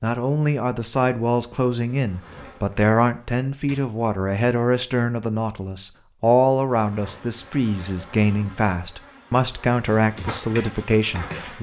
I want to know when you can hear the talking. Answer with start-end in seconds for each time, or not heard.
0.0-11.5.